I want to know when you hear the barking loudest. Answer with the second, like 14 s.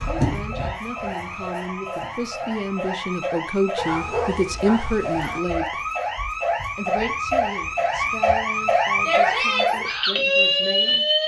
4 s.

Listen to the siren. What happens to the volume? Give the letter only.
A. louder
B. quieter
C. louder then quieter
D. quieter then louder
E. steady
A.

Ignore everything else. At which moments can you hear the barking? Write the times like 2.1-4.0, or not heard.
3.8-5.4.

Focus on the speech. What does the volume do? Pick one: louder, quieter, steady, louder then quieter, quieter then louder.
louder then quieter.